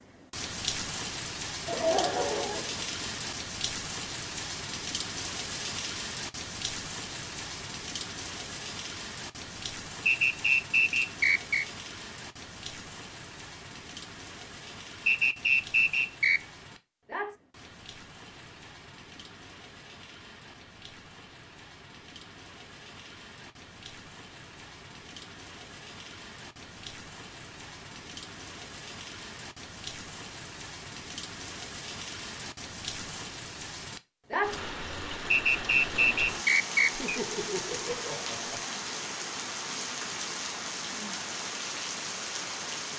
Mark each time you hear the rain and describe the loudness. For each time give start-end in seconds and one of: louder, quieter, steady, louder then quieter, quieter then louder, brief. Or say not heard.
0.0-42.9 quieter then louder.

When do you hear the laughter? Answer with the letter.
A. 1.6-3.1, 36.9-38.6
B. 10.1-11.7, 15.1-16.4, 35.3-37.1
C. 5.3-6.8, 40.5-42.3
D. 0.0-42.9
A.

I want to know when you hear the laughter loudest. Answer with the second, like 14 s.
2 s.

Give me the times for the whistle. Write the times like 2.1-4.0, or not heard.
10.1-11.7, 15.1-16.4, 35.3-37.1.